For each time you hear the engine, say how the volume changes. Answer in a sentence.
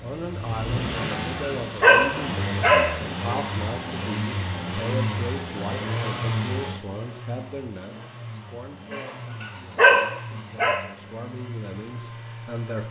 The engine can be heard from 0.0 to 12.8 s, getting quieter.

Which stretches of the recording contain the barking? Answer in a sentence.
You can hear the barking from 0.9 to 3.0 s and from 8.9 to 10.8 s.